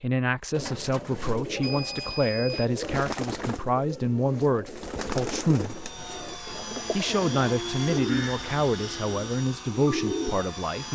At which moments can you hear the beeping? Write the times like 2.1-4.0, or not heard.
1.6-2.7.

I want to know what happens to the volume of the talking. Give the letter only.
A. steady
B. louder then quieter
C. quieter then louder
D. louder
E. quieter
A.